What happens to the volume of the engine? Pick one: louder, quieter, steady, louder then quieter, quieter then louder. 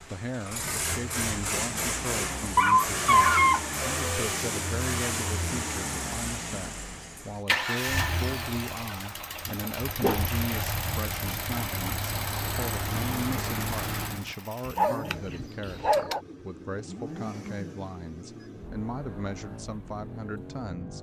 quieter.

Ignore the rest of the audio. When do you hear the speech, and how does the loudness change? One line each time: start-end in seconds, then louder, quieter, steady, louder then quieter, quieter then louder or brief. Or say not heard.
0.1-20.9 steady.